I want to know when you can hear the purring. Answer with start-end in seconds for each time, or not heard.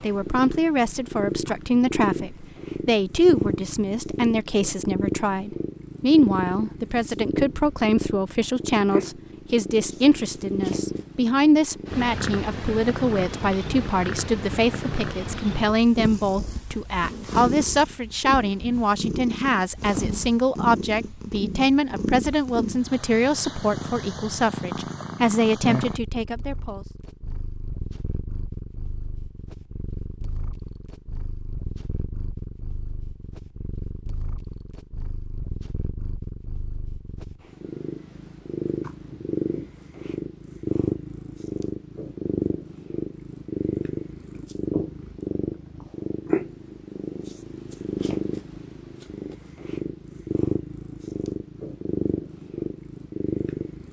0.0-53.8.